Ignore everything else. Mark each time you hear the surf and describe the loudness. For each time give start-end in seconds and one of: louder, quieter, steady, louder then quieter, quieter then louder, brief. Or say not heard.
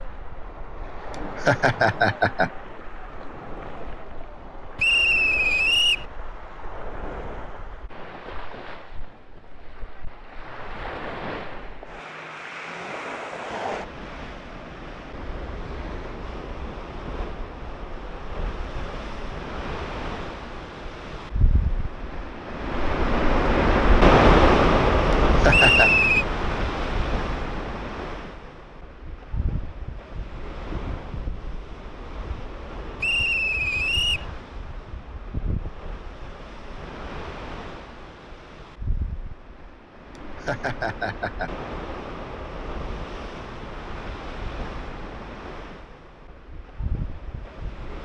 0.0-47.9 louder then quieter.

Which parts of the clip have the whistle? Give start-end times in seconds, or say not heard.
4.8-6.0, 25.5-26.2, 33.0-34.3.